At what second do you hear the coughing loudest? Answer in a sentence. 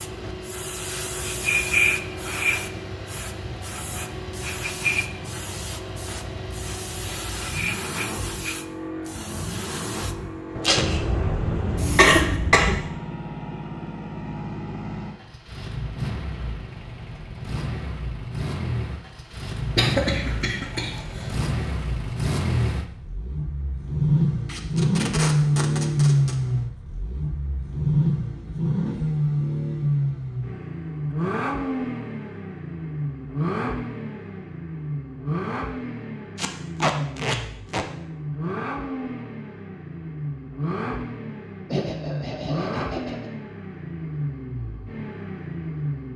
The loudest moment of the coughing is at 12 seconds.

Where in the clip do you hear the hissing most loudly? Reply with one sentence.
The volume of the hissing peaks at 2 seconds.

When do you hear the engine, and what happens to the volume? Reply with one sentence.
The engine can be heard from 0.0 to 46.1 s, getting louder then quieter.